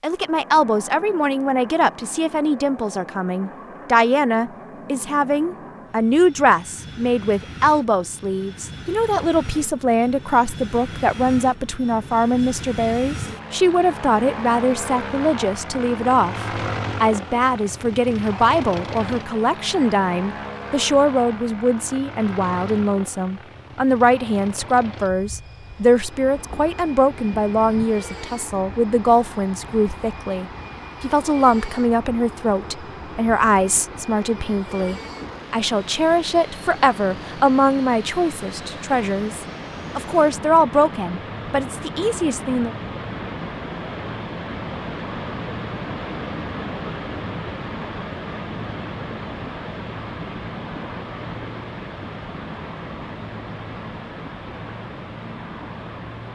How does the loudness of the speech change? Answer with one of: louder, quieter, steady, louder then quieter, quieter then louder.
steady.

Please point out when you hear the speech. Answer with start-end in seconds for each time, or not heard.
0.0-42.8.